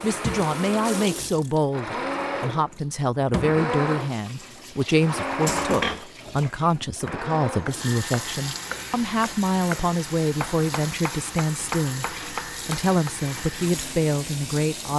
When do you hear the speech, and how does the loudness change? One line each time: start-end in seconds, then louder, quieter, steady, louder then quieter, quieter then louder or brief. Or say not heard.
0.0-14.9 steady.